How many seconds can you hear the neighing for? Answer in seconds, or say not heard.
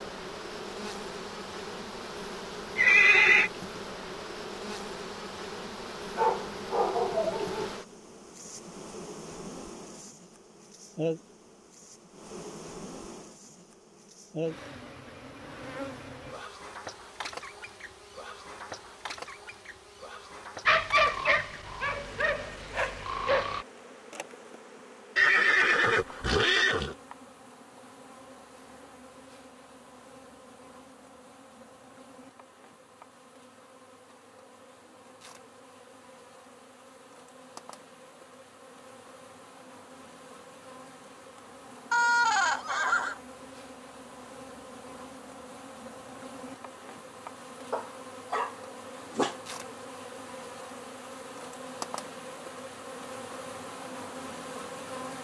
4 s.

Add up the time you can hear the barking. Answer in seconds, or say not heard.
6 s.